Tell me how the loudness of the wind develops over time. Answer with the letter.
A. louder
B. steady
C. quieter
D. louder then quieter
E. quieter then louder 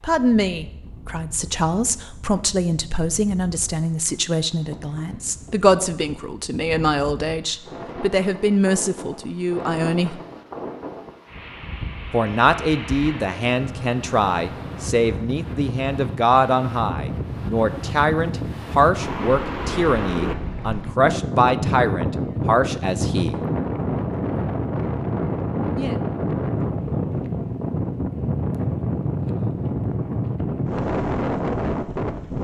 A.